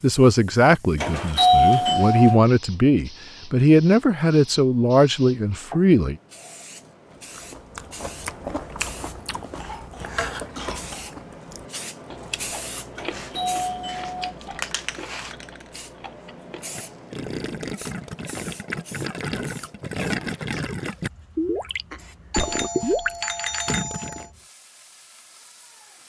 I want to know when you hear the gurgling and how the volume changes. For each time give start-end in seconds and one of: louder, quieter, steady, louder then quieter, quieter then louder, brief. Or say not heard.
16.6-24.2 louder.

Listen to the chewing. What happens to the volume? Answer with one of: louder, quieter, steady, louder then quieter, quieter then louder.
quieter.